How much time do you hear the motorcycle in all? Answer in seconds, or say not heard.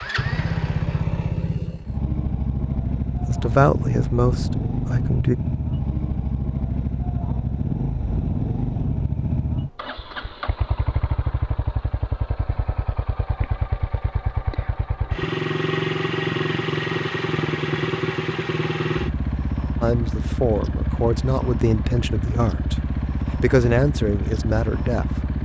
25 s.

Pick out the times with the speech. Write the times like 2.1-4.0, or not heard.
3.2-5.3, 19.8-25.2.